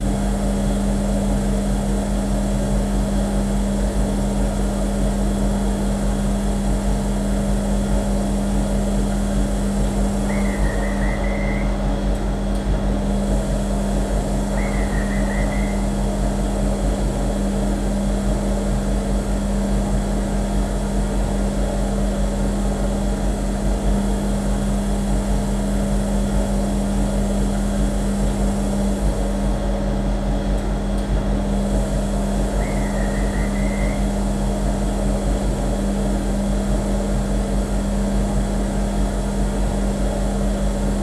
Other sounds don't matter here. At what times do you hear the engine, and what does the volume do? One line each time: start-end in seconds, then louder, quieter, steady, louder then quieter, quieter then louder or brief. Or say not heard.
0.0-40.9 steady.